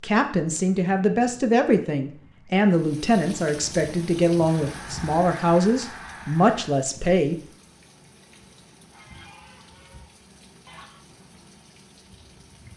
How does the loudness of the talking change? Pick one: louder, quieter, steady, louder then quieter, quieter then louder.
steady.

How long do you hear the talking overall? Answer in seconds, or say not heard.
7 s.